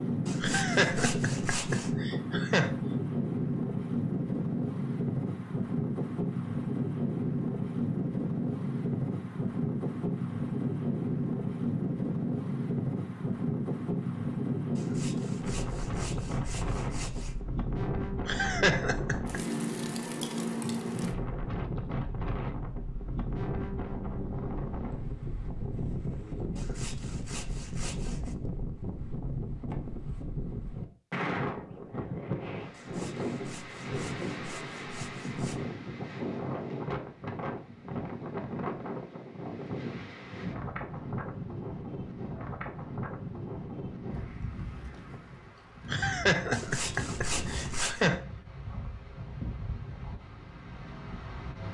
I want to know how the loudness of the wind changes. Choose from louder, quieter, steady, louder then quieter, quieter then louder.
quieter.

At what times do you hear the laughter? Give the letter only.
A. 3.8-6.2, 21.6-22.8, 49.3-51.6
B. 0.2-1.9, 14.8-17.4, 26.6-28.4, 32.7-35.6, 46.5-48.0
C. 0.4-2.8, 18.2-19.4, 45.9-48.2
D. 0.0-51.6
C.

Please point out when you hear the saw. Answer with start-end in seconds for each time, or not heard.
0.2-1.9, 14.8-17.4, 26.6-28.4, 32.7-35.6, 46.5-48.0.